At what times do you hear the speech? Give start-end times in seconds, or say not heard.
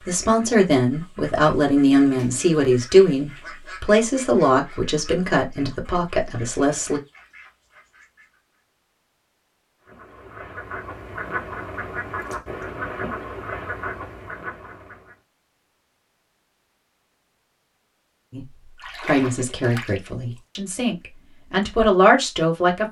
0.0-7.0, 18.3-22.8.